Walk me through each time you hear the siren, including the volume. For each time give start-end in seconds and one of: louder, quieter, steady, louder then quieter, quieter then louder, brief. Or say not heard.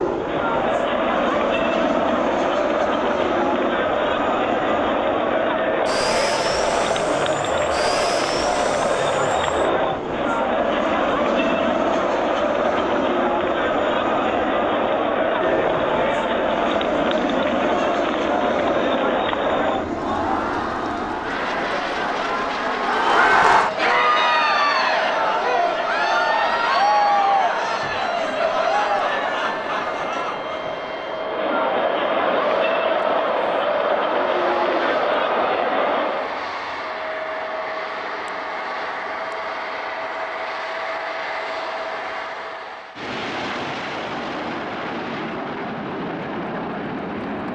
not heard.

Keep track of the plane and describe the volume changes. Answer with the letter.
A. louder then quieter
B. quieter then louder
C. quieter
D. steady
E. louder
D.